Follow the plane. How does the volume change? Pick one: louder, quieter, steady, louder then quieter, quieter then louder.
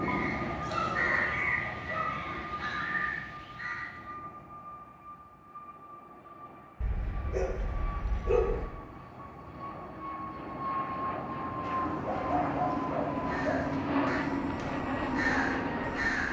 quieter then louder.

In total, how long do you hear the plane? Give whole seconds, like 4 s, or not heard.
16 s.